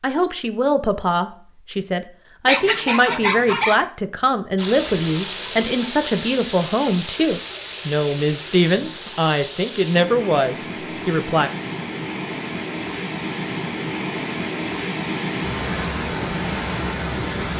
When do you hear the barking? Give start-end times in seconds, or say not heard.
2.5-3.9.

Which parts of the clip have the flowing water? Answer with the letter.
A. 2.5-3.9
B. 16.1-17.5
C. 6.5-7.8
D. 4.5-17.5
D.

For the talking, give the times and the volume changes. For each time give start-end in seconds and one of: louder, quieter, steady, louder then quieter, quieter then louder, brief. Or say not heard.
0.0-11.5 steady.